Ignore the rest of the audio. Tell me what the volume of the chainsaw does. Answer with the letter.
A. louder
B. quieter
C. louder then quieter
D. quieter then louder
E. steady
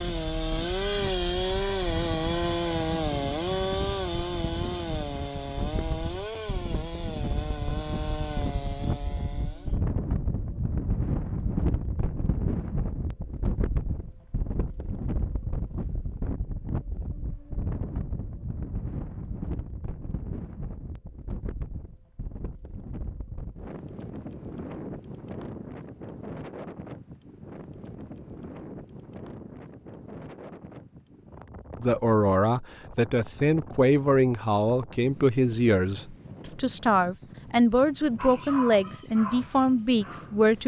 B.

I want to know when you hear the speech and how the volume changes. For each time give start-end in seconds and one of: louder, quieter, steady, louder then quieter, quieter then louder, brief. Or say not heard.
31.8-40.6 steady.